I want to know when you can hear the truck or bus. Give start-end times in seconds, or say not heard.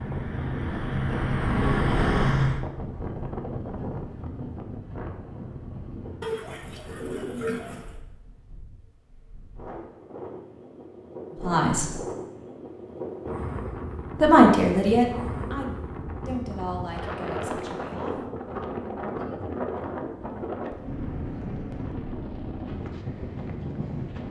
0.0-2.6.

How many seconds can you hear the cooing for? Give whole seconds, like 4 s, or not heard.
2 s.